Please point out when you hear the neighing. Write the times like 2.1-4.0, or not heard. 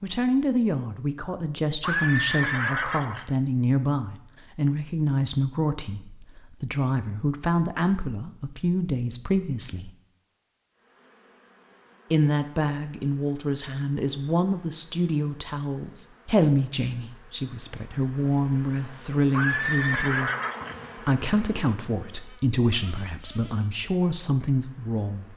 1.8-3.2, 19.3-20.8.